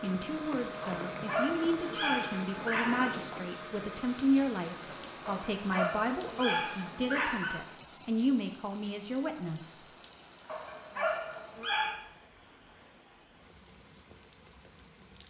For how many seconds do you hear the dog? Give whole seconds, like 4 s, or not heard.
6 s.